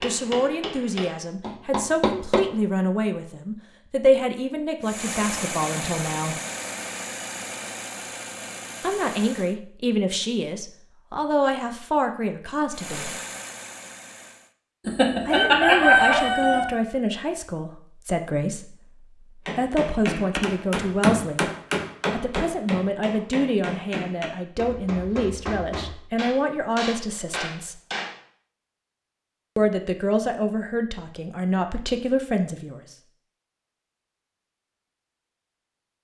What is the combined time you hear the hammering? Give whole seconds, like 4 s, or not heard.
11 s.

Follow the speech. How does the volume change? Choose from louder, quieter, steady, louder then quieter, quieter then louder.
steady.